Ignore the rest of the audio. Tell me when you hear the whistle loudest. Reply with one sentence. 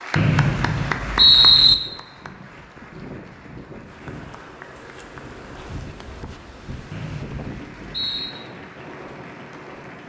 The loudest moment of the whistle is at 1 second.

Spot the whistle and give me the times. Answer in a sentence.
You can hear the whistle from 0.1 to 1.8 s and from 6.9 to 8.3 s.